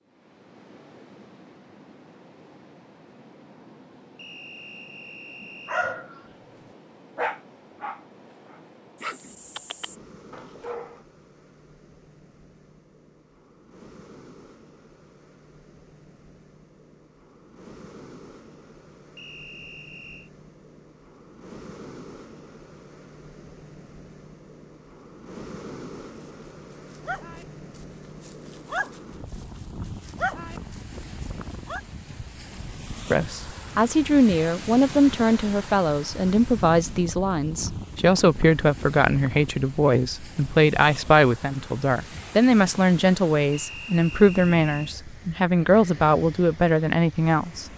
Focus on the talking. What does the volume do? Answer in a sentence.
The volume of the talking stays about the same.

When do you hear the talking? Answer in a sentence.
You can hear the talking from 33.1 to 47.6 s.